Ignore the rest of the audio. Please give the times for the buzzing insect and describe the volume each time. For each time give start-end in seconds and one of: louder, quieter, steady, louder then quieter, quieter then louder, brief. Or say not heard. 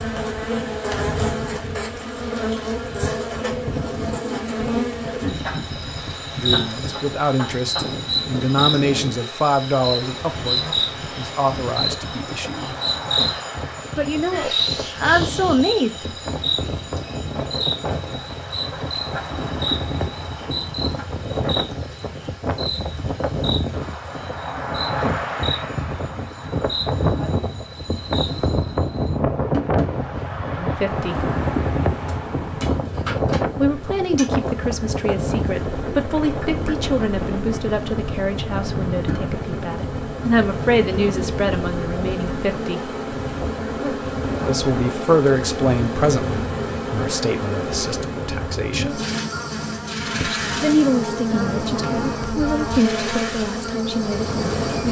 0.0-29.9 quieter
30.9-54.8 louder.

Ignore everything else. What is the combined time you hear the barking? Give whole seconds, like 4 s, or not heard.
not heard.